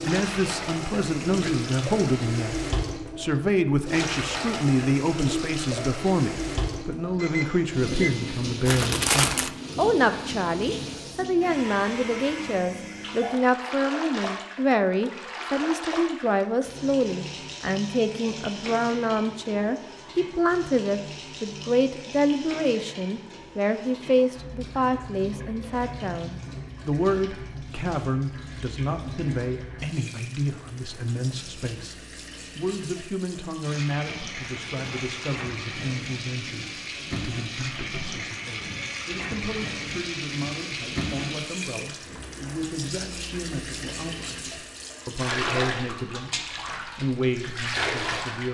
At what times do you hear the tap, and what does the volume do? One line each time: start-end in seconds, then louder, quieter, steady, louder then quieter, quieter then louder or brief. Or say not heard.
0.0-48.4 quieter then louder.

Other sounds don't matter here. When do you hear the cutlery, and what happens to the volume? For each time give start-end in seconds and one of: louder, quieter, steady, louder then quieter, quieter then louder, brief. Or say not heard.
not heard.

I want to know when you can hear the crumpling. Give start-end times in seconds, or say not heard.
8.7-9.5, 34.4-35.5.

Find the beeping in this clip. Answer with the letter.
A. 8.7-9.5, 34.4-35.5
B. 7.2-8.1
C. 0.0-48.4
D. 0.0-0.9
B.